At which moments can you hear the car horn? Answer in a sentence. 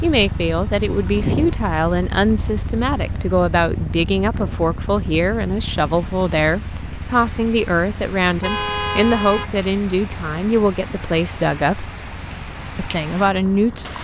You can hear the car horn from 8.2 to 9.5 s.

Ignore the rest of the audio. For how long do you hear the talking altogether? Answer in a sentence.
The talking can be heard for 13 seconds in total.